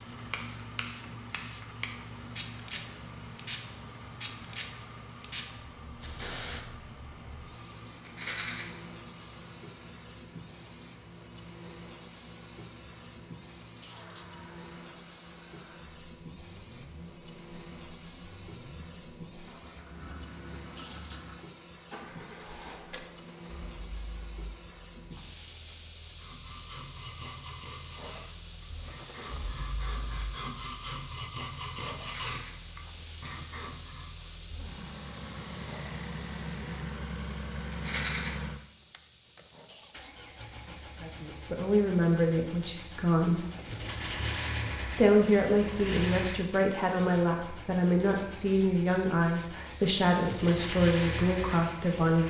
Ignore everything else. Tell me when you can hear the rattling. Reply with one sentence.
You can hear the rattling from 8.0 to 8.7 s, from 32.0 to 32.5 s and from 37.7 to 38.3 s.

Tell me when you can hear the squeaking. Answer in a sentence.
The squeaking can be heard from 13.8 to 14.3 s, from 20.8 to 21.2 s and from 39.6 to 40.1 s.